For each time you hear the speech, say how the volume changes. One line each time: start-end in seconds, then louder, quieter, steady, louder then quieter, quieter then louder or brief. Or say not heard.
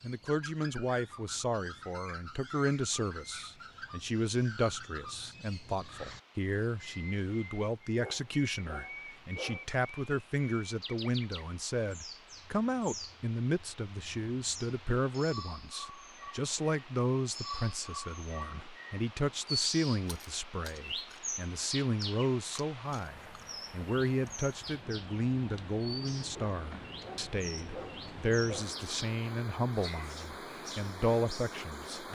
0.0-32.0 steady.